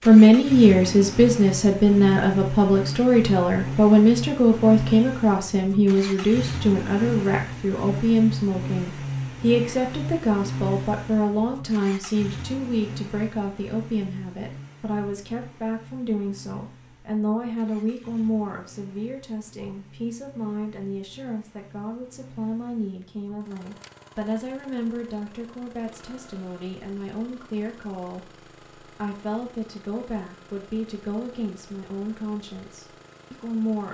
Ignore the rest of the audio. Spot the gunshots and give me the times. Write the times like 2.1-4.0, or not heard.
not heard.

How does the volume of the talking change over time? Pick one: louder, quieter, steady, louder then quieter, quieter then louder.
quieter.